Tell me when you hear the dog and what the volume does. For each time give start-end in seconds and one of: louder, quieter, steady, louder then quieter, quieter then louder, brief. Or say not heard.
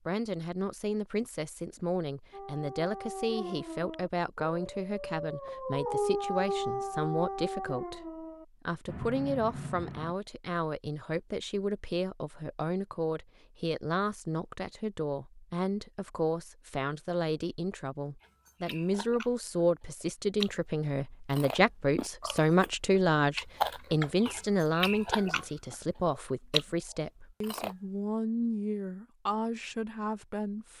2.3-10.2 louder then quieter.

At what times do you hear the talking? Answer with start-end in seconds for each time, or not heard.
0.1-30.7.